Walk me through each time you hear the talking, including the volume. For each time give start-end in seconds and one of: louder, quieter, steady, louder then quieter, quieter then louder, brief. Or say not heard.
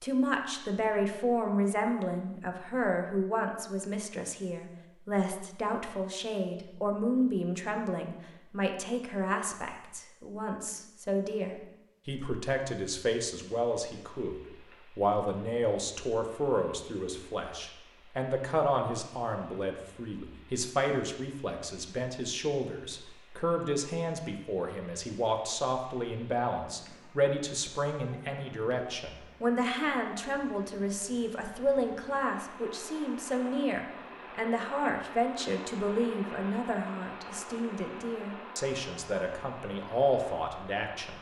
0.0-41.1 steady.